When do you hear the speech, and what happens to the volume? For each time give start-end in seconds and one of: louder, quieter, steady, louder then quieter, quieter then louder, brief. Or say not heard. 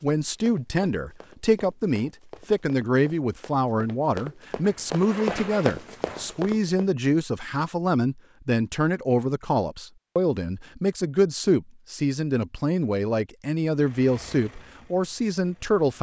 0.0-15.9 steady.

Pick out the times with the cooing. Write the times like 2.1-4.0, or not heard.
not heard.